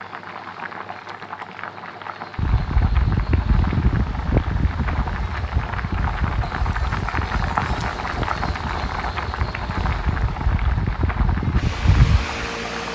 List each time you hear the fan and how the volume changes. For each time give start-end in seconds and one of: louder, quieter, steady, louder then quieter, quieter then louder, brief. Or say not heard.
2.4-12.9 quieter then louder.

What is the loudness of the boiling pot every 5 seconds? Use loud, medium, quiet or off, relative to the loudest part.
medium, loud, medium.